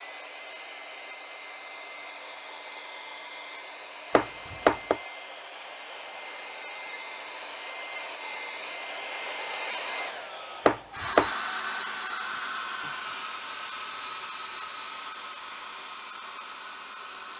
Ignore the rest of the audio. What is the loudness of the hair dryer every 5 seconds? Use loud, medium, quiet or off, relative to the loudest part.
medium, loud, loud, medium.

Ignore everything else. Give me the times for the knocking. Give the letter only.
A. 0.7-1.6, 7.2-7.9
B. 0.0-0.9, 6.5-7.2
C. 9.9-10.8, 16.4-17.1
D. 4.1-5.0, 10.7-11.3
D.